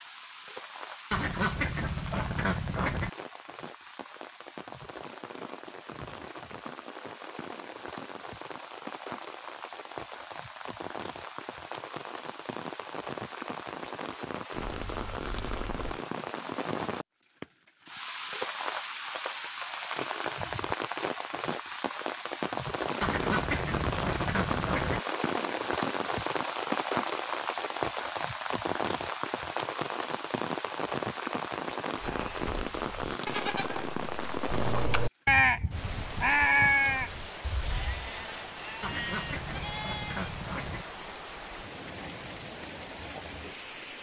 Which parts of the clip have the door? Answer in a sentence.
The door can't be heard in this clip.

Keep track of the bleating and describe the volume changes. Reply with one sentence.
The loudness of the bleating goes up, then down.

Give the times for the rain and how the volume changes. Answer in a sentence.
You can hear the rain from 0.0 to 43.9 s, getting louder then quieter.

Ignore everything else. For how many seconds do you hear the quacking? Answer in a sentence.
You can hear the quacking for 6 seconds altogether.